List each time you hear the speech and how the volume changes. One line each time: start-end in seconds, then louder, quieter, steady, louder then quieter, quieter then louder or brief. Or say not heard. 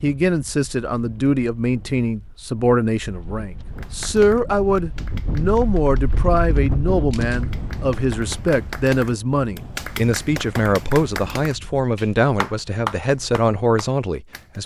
0.0-14.6 steady.